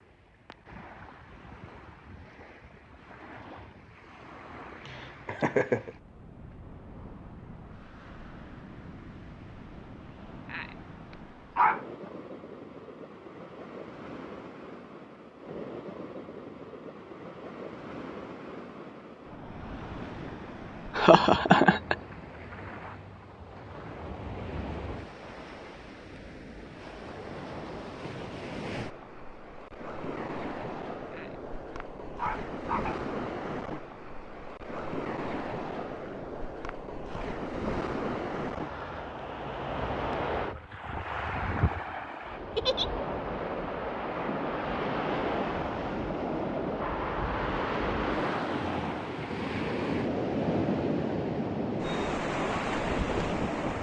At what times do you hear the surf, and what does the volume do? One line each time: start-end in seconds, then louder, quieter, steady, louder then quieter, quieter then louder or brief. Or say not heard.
0.0-53.7 louder.